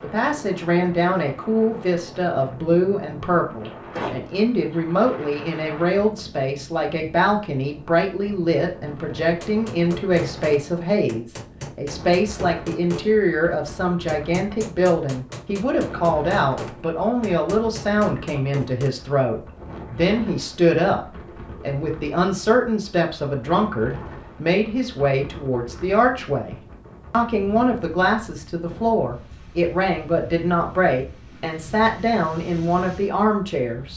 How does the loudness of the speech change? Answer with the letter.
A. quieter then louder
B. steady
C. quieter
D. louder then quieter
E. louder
B.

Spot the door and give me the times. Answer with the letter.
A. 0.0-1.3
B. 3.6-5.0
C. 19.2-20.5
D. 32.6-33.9
B.